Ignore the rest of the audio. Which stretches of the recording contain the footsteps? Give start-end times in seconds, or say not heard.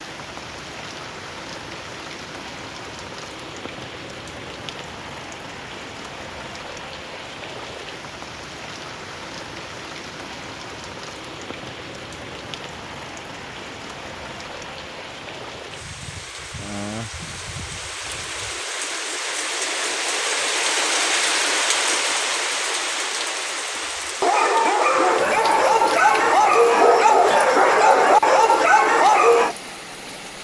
not heard.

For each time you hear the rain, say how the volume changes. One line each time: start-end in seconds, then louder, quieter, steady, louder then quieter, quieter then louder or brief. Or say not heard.
0.0-30.3 louder then quieter.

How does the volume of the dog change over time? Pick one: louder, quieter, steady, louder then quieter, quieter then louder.
steady.